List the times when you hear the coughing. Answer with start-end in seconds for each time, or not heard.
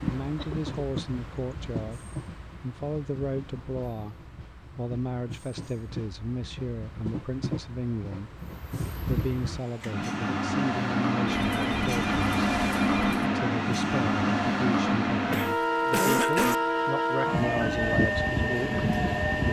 0.3-1.1, 15.3-16.6.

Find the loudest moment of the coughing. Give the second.
16 s.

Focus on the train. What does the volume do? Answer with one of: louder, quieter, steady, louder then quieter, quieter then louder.
louder.